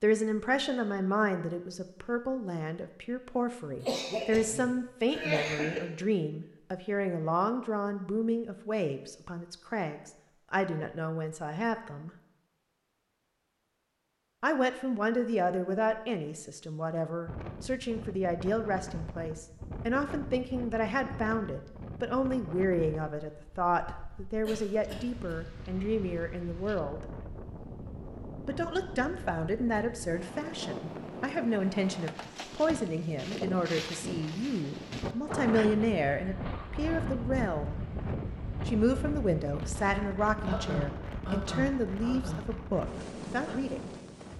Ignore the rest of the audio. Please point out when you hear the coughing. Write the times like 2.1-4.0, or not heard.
3.8-5.8, 24.4-25.4, 40.5-42.4.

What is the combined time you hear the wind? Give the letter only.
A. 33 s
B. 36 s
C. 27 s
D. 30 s
C.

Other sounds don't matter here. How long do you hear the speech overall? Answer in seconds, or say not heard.
39 s.